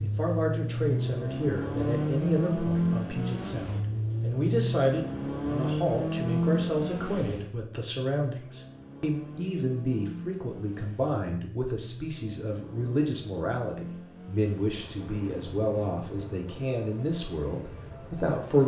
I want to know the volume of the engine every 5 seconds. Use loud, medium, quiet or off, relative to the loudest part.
loud, loud, quiet, quiet.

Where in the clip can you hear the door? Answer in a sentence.
The door can't be heard in this clip.